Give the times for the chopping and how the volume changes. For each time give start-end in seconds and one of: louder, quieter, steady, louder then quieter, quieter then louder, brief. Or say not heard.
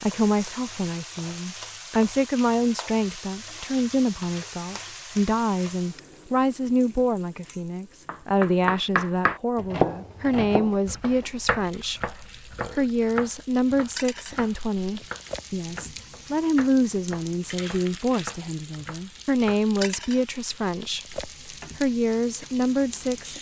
8.1-19.6 quieter.